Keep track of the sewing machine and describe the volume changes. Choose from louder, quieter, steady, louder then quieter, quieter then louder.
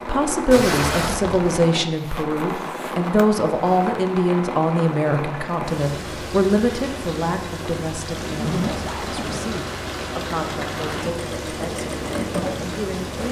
louder.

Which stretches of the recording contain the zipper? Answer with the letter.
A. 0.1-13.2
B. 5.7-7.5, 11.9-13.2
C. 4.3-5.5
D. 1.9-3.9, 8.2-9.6
D.